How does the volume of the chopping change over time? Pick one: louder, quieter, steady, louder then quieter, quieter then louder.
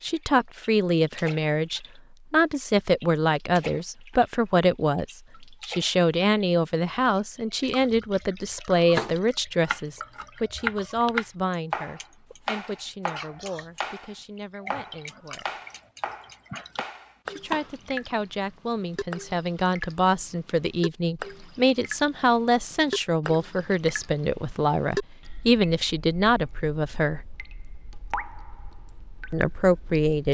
quieter.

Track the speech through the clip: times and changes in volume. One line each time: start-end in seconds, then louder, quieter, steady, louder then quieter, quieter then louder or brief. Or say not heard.
0.0-15.6 quieter
17.2-27.3 louder
29.3-30.2 brief.